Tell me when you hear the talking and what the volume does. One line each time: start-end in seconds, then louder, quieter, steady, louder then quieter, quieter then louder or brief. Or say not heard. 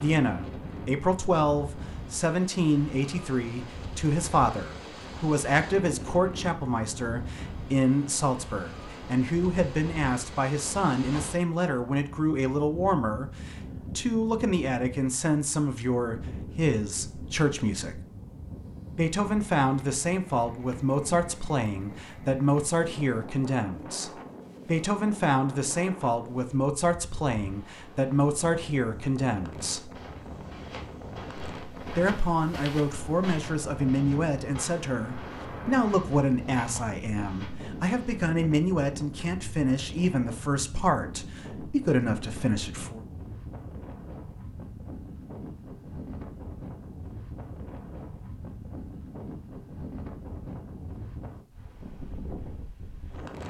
0.0-18.0 steady
18.9-29.9 steady
31.9-43.0 steady.